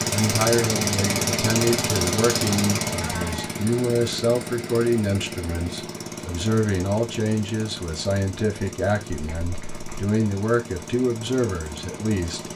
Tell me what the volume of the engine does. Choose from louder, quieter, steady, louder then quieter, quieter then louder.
quieter.